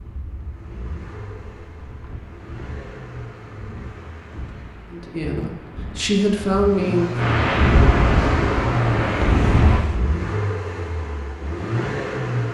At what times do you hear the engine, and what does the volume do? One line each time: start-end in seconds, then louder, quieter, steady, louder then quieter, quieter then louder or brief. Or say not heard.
0.0-12.4 louder.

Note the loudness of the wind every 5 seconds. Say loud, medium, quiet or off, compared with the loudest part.
quiet, loud, off.